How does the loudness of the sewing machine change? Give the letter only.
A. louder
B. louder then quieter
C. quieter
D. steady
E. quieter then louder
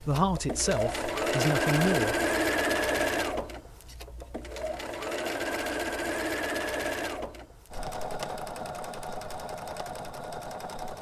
C.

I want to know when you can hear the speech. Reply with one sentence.
The speech can be heard from 0.0 to 2.1 s.